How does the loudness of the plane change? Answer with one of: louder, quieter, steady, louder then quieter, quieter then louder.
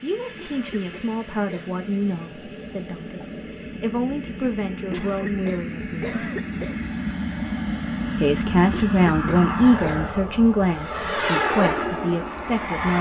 louder.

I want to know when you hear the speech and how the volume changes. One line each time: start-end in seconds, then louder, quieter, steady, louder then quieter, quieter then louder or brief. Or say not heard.
0.0-6.2 quieter then louder
8.2-12.9 quieter.